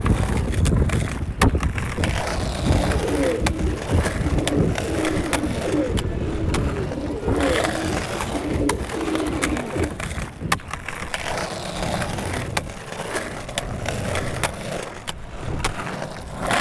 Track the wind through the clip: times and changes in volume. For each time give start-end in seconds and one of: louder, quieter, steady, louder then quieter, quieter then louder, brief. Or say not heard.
0.0-16.5 quieter.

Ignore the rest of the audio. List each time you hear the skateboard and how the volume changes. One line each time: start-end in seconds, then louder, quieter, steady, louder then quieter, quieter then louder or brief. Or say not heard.
0.0-16.5 steady.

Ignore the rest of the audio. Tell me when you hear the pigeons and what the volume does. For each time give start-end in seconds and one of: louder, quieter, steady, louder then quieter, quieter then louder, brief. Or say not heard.
2.7-9.9 steady.